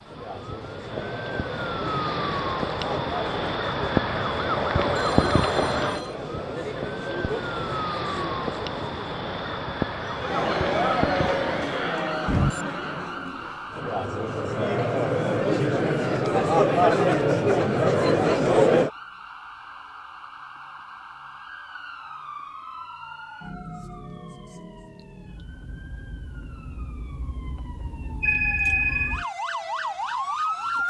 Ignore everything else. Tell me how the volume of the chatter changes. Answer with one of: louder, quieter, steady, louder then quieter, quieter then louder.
louder.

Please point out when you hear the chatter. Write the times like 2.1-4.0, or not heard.
0.1-18.9.